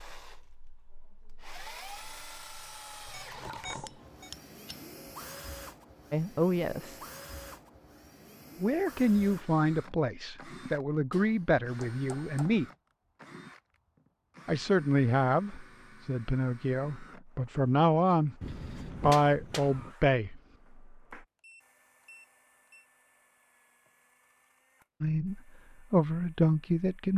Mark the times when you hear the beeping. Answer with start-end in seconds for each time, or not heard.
3.1-4.3, 21.4-22.9.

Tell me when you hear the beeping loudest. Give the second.
4 s.